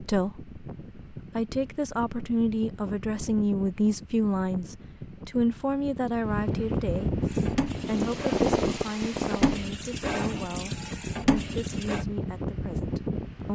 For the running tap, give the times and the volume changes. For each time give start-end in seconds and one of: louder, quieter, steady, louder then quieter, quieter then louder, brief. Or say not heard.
7.2-12.1 quieter then louder.